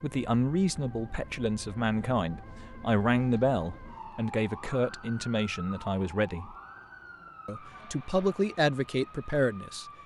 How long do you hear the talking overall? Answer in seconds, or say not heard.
9 s.